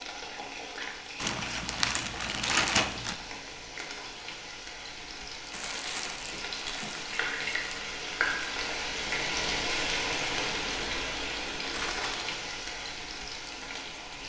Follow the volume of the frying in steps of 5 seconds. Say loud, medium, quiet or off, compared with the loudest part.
medium, loud, loud.